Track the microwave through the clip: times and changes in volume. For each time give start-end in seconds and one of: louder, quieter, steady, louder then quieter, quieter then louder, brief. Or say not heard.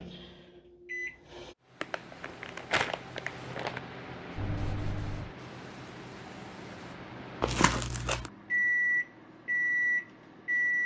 0.0-1.6 brief
4.3-10.8 quieter then louder.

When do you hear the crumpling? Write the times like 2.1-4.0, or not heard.
1.8-3.8, 7.4-8.3.